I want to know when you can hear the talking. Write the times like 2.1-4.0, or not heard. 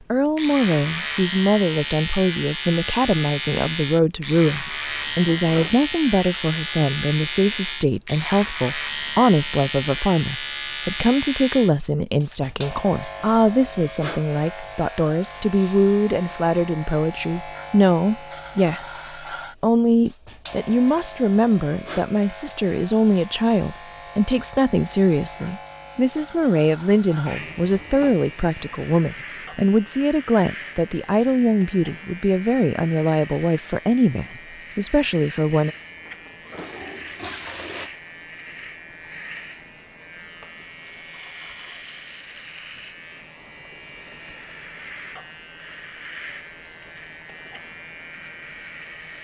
0.1-35.8.